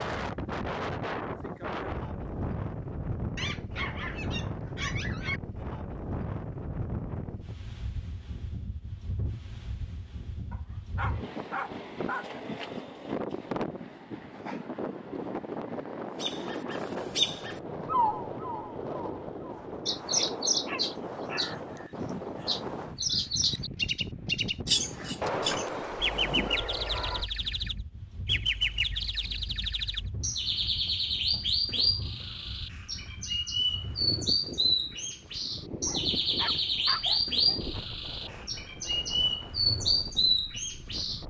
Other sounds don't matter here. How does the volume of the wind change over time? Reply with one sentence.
The volume of the wind goes down.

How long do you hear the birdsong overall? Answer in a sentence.
You can hear the birdsong for 25 seconds altogether.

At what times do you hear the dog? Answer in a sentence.
You can hear the dog from 3.4 to 5.4 s, from 10.5 to 12.4 s, from 20.6 to 21.8 s, from 25.2 to 27.3 s and from 35.9 to 37.6 s.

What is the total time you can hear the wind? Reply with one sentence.
The wind can be heard for 41 seconds in total.